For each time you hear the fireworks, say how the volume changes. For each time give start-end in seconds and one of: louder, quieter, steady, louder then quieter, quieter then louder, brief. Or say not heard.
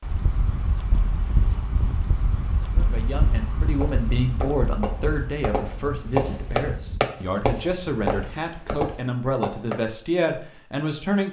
3.8-9.8 louder then quieter.